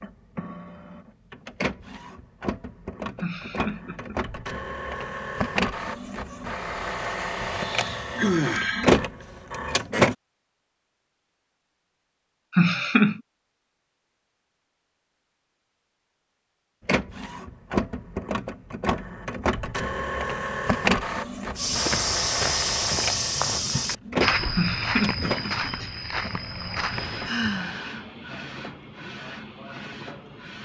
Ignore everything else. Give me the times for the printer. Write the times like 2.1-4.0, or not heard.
0.0-10.2, 16.9-30.6.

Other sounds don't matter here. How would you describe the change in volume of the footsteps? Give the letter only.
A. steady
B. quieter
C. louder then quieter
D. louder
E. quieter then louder
B.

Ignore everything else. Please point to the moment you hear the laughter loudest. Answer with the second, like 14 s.
13 s.